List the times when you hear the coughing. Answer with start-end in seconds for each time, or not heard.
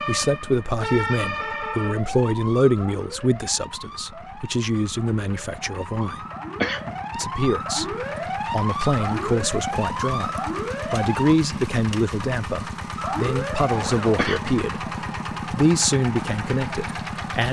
6.6-7.0, 14.2-14.6.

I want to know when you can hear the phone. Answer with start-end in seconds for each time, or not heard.
not heard.